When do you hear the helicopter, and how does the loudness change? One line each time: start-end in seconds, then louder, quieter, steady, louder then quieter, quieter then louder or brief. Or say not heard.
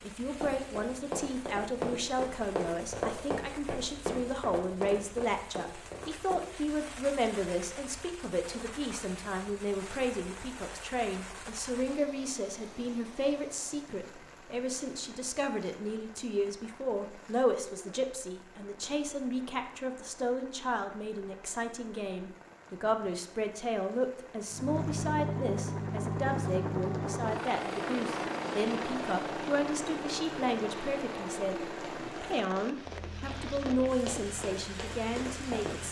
24.5-35.8 quieter.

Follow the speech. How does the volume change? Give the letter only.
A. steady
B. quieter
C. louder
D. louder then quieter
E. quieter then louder
A.